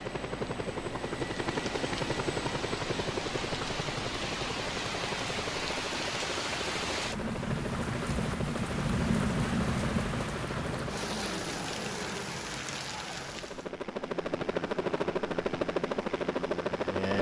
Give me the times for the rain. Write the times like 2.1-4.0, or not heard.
0.0-13.7.